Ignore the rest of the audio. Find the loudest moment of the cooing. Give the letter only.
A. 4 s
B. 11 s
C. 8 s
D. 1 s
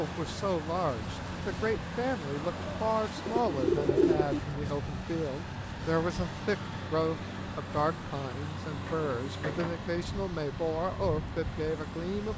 A.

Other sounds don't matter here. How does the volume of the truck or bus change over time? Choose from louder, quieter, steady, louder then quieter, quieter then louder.
steady.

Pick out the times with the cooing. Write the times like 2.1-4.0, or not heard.
2.5-4.4.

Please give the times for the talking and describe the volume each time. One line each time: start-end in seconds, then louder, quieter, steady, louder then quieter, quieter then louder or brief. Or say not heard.
0.0-12.3 steady.